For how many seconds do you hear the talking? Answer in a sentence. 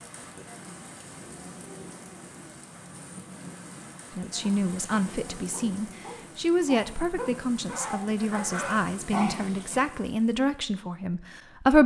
You can hear the talking for 8 seconds altogether.